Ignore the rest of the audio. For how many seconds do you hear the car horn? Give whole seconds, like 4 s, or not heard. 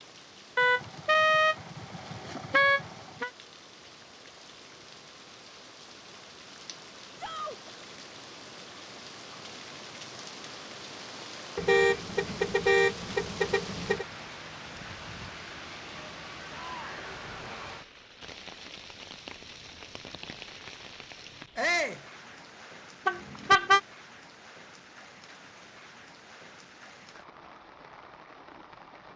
6 s.